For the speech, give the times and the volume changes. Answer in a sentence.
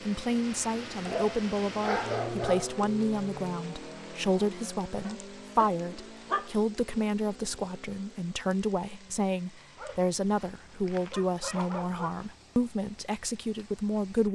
You can hear the speech from 0.1 to 14.3 s, at a steady volume.